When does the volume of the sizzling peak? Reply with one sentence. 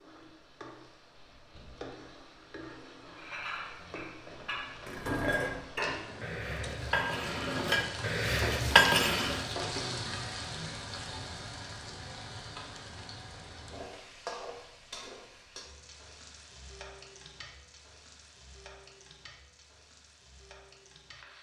The volume of the sizzling peaks at 10 seconds.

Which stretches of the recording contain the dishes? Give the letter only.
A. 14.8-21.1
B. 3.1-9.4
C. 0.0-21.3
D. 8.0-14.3
B.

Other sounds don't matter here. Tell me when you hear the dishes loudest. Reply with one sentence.
The volume of the dishes peaks at 9 seconds.